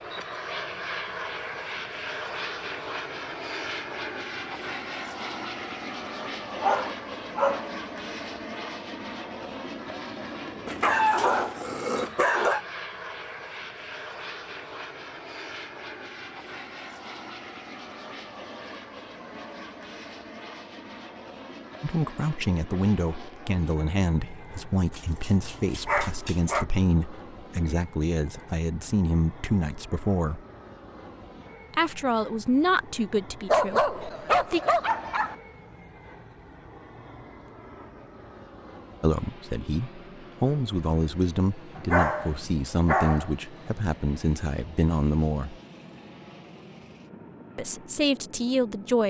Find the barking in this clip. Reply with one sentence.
The barking can be heard from 6.6 to 7.7 s, from 10.7 to 12.7 s, from 24.9 to 26.6 s, from 33.5 to 35.4 s and from 41.8 to 43.4 s.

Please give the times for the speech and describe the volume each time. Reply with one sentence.
The speech can be heard from 21.8 to 30.4 s, at a steady volume; briefly from 31.7 to 34.6 s; from 39.0 to 45.5 s, at a steady volume; and briefly from 47.5 to 49.0 s.